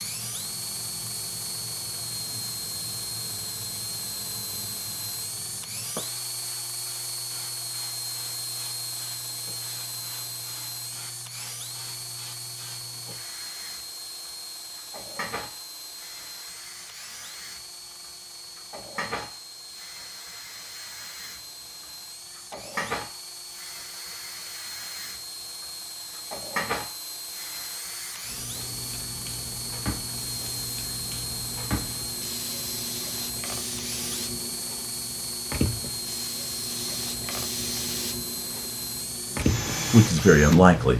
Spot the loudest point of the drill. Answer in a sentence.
The volume of the drill peaks at 40 seconds.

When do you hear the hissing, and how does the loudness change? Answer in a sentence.
You can hear the hissing from 0.0 to 40.9 s, getting louder.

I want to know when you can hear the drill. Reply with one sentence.
The drill can be heard from 0.0 to 40.8 s.